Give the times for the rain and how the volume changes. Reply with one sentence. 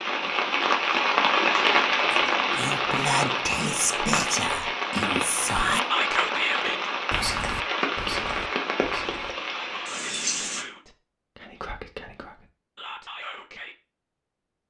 You can hear the rain from 0.0 to 10.7 s, getting quieter.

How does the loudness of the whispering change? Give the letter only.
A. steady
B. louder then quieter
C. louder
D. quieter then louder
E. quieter
E.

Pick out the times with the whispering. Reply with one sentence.
The whispering can be heard from 2.1 to 13.8 s.